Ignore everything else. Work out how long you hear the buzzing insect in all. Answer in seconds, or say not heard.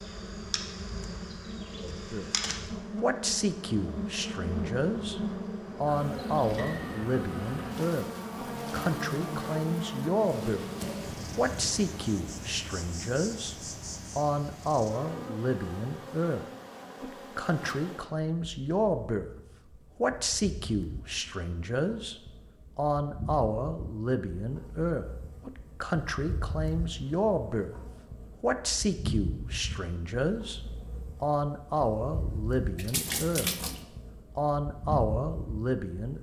36 s.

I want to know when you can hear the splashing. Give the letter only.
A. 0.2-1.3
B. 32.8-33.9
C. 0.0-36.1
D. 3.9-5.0
B.